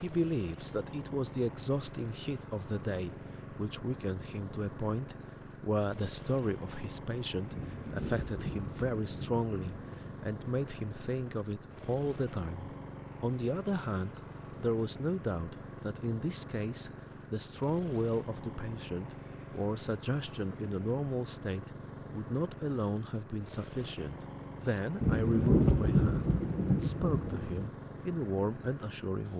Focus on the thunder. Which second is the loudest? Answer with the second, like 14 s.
26 s.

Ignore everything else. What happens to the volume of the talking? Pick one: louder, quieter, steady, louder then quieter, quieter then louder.
steady.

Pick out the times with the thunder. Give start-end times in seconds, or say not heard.
7.5-9.9, 25.0-27.7.